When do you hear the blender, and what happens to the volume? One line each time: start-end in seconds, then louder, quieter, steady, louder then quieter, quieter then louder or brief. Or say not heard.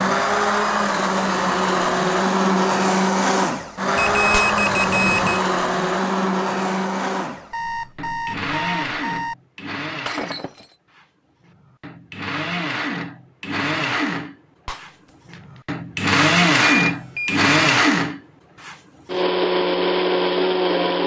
0.0-21.0 quieter then louder.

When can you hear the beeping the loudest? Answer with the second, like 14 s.
4 s.